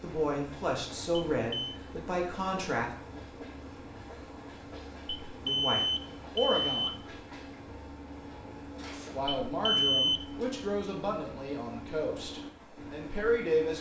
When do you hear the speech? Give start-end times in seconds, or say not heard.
0.0-2.9, 5.4-7.0, 9.1-13.7.